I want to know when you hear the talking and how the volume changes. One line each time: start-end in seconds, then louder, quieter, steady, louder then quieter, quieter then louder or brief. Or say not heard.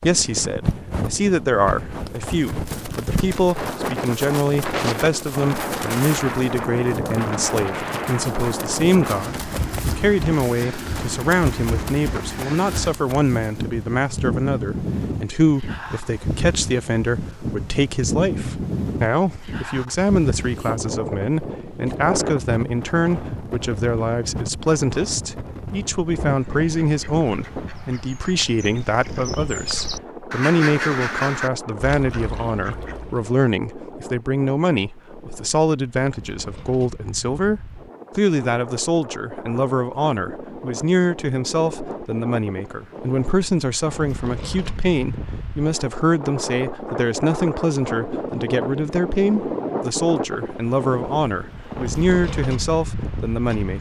0.0-53.7 steady.